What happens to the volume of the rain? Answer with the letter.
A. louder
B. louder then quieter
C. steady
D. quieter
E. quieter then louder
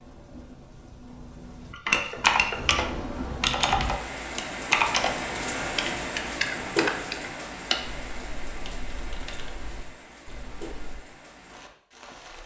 B.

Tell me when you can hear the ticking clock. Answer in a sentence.
The ticking clock can't be heard in this clip.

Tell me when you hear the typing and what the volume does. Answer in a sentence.
The typing can be heard from 1.7 to 11.0 s, getting quieter.